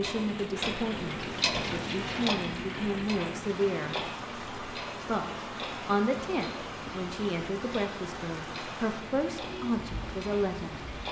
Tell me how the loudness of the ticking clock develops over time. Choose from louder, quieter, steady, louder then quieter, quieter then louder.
quieter.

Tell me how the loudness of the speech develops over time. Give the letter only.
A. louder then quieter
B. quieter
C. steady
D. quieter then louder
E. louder
C.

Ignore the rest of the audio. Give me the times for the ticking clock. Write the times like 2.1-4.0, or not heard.
0.0-11.0.